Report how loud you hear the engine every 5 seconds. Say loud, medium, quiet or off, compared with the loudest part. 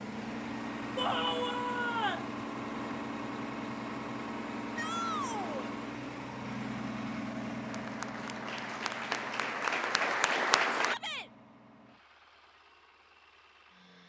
loud, loud, quiet.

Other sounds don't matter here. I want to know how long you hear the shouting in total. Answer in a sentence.
You can hear the shouting for 3 seconds altogether.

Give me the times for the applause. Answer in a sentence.
The applause can be heard from 7.7 to 10.9 s.